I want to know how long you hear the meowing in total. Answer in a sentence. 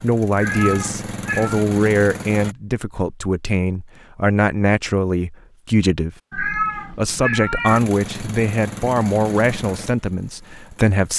The meowing can be heard for 3 seconds in total.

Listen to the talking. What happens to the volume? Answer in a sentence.
The loudness of the talking stays about the same.